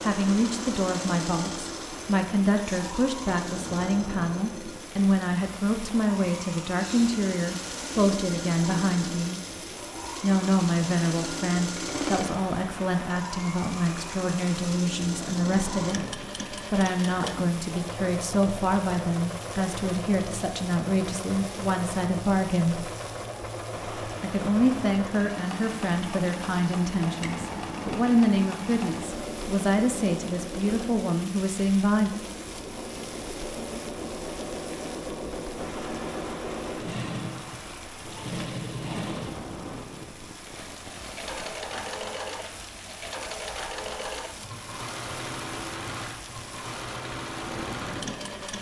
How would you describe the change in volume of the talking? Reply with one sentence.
The loudness of the talking stays about the same.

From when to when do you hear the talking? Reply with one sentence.
You can hear the talking from 0.0 to 9.4 s, from 10.2 to 22.9 s and from 24.2 to 32.1 s.